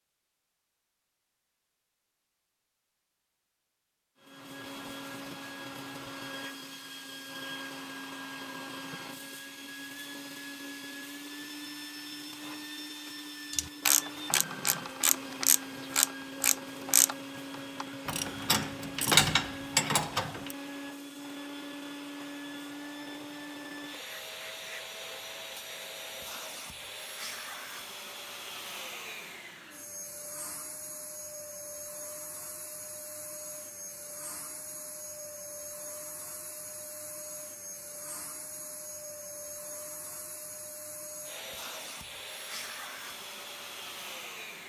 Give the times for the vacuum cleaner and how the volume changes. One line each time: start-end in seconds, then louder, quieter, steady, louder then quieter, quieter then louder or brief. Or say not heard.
4.2-44.6 steady.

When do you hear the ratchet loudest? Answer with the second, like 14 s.
19 s.